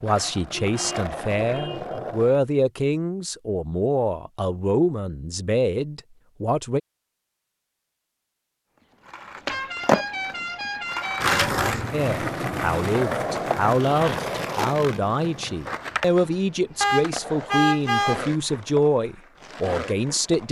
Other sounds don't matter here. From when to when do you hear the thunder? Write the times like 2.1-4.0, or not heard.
not heard.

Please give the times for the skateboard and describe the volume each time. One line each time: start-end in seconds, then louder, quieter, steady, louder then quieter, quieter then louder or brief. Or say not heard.
0.0-2.4 brief
9.1-20.4 quieter.